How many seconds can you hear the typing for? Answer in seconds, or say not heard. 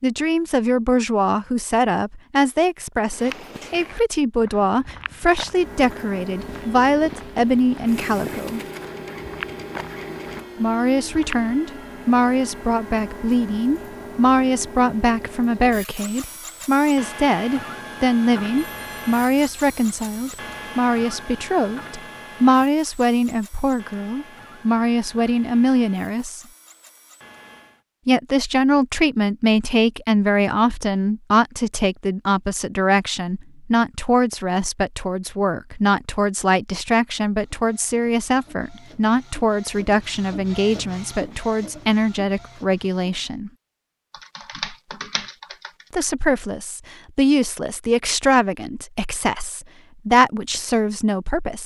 2 s.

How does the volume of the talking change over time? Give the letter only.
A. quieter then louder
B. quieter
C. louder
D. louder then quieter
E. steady
E.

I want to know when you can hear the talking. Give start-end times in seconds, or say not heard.
0.0-8.6, 10.6-26.4, 28.1-43.5, 45.9-51.6.